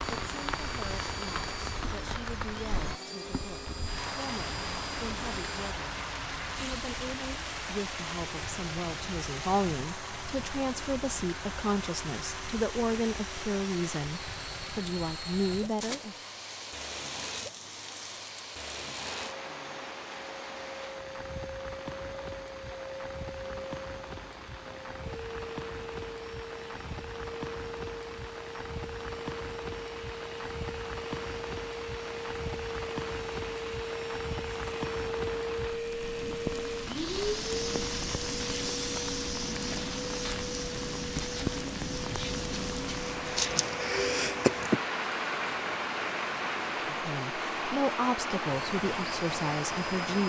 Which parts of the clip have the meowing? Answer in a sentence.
You can't hear the meowing here.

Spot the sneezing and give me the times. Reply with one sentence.
You can hear the sneezing from 43.4 to 44.8 s.